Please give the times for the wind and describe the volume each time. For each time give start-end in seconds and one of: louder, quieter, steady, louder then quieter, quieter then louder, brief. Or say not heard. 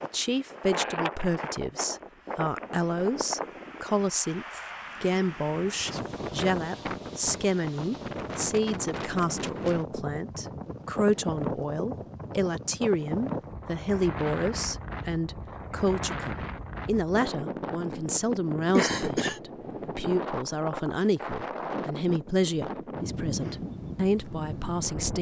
0.0-25.1 steady.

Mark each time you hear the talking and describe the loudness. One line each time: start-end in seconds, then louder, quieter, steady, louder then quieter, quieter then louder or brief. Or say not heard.
0.0-25.1 steady.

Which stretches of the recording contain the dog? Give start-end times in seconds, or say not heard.
not heard.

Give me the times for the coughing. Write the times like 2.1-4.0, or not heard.
18.8-19.4.